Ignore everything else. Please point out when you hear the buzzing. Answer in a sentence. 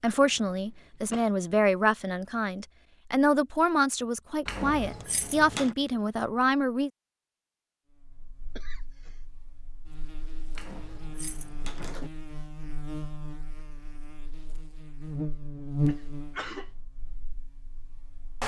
You can hear the buzzing from 8.0 to 18.4 s.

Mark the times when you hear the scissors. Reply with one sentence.
The scissors can't be heard in this clip.